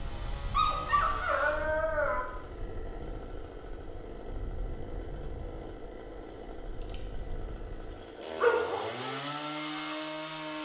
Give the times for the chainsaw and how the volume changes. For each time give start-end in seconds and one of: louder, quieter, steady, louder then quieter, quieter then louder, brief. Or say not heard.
0.0-10.6 louder.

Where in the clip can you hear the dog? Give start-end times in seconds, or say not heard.
0.5-2.2, 8.3-9.1.